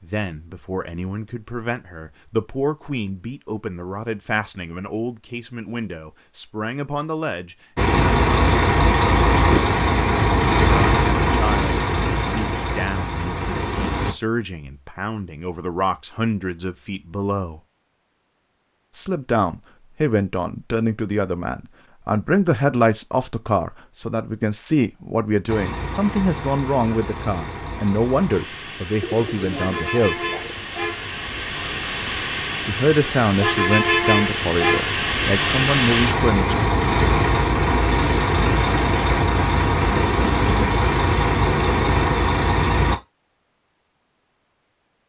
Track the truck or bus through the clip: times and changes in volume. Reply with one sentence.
You can hear the truck or bus from 7.8 to 14.2 s, getting quieter; and from 25.4 to 43.0 s, getting louder.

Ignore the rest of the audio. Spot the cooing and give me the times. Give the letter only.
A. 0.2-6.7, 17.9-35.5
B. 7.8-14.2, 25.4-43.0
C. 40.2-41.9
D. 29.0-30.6
D.